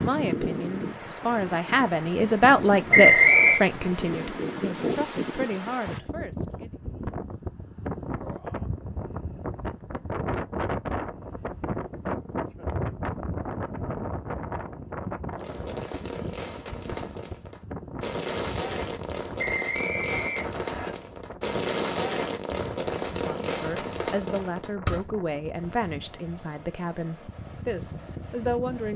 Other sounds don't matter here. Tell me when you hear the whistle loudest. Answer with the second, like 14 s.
3 s.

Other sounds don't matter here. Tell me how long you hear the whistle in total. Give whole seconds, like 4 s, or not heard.
2 s.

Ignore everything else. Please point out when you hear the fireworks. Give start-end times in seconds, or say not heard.
15.3-25.1.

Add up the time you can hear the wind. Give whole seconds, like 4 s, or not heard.
29 s.